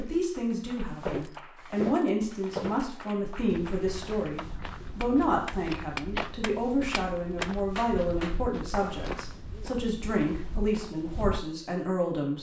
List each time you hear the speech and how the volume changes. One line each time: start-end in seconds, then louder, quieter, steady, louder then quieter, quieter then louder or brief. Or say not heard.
0.0-12.3 steady.